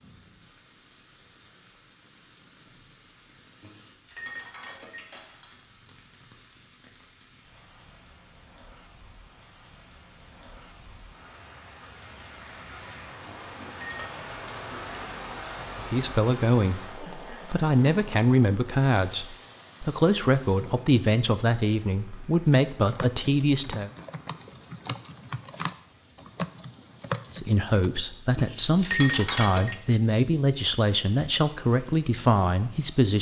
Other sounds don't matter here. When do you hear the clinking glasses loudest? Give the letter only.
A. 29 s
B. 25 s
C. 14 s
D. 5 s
A.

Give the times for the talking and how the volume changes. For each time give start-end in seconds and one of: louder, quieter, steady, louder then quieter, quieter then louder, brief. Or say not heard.
15.9-23.9 steady
27.3-33.1 steady.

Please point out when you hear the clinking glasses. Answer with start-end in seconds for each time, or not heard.
3.6-5.5, 13.2-14.1, 28.4-29.8.